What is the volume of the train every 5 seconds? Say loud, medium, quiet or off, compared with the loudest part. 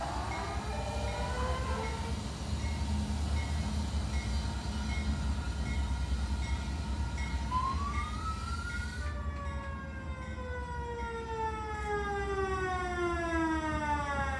loud, loud, medium.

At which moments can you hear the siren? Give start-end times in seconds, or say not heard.
0.0-2.1, 7.5-14.3.